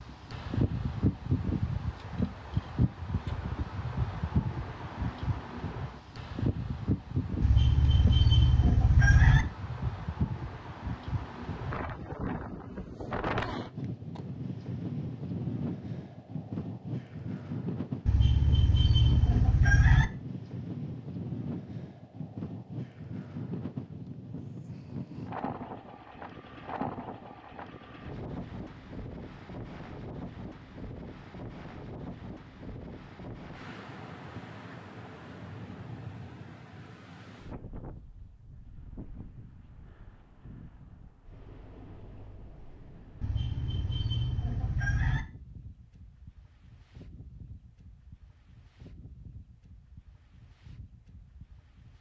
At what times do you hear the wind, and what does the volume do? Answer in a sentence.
You can hear the wind from 0.0 to 51.9 s, getting quieter.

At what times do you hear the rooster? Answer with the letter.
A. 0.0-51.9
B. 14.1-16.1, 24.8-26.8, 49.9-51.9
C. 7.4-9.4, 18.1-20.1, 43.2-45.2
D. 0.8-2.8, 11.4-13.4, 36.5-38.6
C.